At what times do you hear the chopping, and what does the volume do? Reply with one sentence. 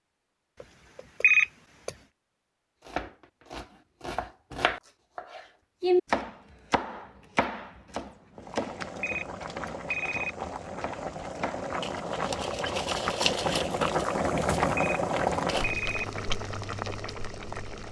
The chopping can be heard from 2.8 to 11.7 s, getting louder then quieter.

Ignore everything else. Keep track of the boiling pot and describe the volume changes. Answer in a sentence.
The volume of the boiling pot goes up, then down.